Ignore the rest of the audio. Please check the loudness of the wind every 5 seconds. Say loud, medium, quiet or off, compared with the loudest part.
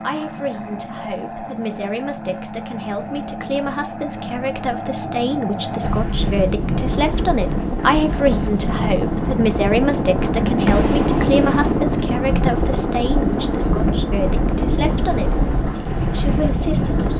off, loud, loud, loud.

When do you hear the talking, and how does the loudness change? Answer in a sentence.
You can hear the talking from 0.0 to 17.1 s, getting louder then quieter.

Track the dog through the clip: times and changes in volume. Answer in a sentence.
The dog can't be heard in this clip.